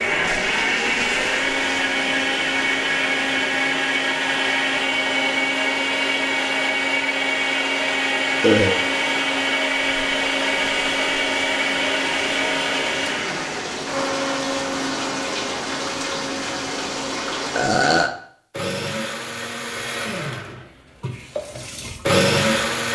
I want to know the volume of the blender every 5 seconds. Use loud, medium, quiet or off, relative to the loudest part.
loud, loud, loud, medium, loud.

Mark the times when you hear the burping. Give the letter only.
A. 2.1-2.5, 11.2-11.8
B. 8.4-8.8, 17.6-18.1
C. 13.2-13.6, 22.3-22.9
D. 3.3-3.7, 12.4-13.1
B.